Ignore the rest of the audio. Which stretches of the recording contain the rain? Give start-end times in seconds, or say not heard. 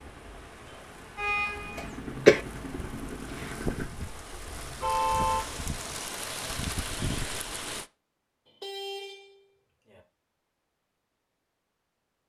0.0-7.9.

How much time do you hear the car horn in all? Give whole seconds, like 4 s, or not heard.
4 s.